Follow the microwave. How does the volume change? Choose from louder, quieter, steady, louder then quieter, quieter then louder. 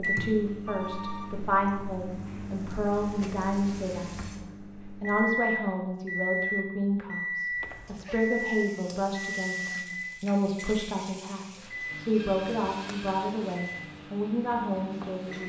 louder then quieter.